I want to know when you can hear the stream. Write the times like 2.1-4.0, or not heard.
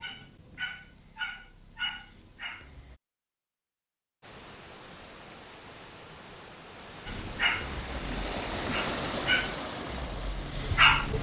4.2-11.1.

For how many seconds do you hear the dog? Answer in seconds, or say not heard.
7 s.